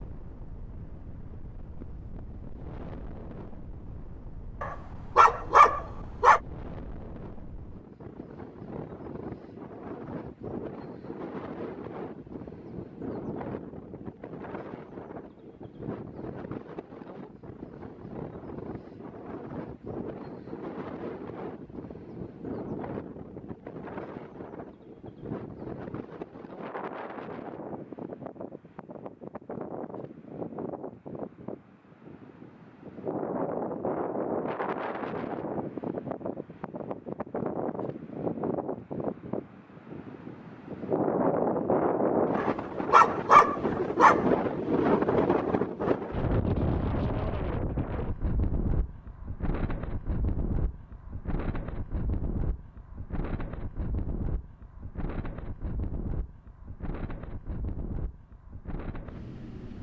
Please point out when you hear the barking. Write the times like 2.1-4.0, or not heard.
4.6-6.4, 42.4-44.2.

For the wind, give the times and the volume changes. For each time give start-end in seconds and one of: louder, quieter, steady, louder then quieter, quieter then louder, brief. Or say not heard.
0.0-59.7 louder then quieter.